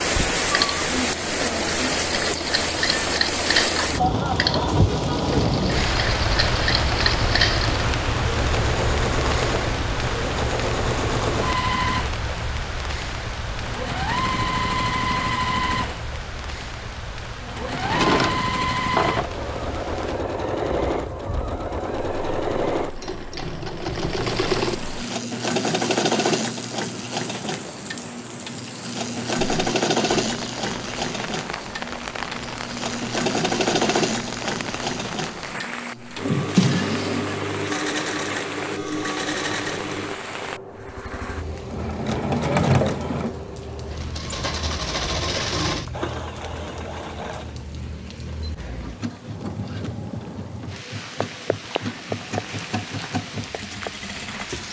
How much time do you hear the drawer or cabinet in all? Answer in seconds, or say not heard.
3 s.